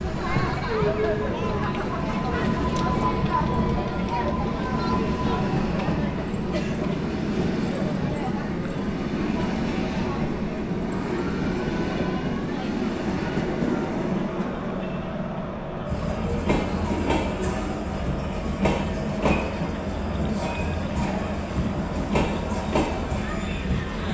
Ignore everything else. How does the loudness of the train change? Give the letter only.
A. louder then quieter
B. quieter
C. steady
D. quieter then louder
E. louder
C.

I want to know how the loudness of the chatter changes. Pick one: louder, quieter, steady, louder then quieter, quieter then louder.
quieter.